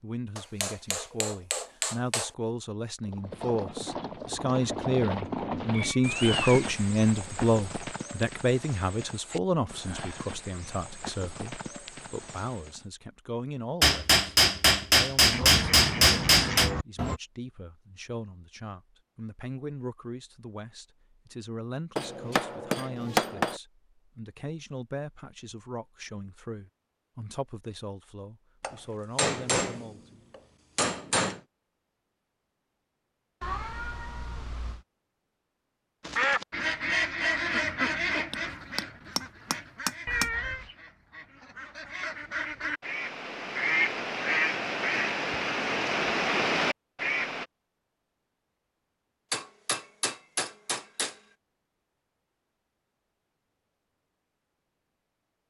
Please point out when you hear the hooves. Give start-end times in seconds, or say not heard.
3.0-12.9.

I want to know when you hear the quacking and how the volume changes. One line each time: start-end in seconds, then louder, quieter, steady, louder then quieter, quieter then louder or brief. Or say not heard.
15.3-17.2 brief
36.0-47.5 quieter then louder.